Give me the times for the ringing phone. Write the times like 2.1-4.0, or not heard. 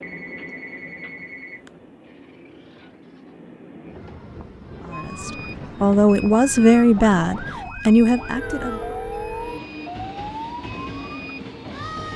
0.0-1.7, 8.3-9.6.